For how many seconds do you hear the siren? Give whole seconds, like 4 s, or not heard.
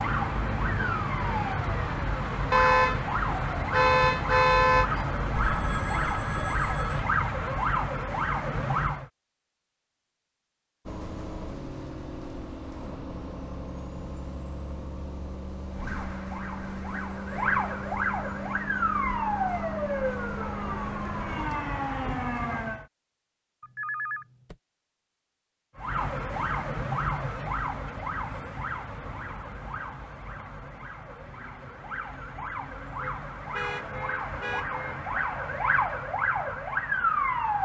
28 s.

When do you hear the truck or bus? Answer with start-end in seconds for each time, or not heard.
10.8-21.4.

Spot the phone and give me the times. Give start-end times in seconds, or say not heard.
5.3-7.0, 23.6-24.6.